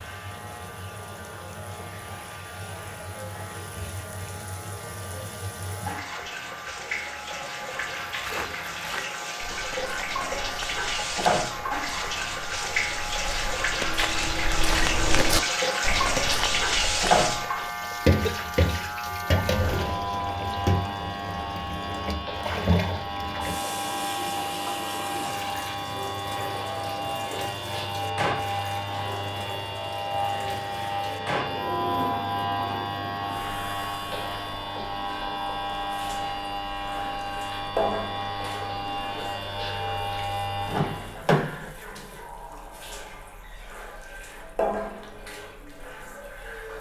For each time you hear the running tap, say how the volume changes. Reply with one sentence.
You can hear the running tap from 0.0 to 46.7 s, getting louder then quieter.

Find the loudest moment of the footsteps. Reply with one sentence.
The loudest moment of the footsteps is at 15 seconds.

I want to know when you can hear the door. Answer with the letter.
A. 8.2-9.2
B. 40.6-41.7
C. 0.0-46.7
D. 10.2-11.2
B.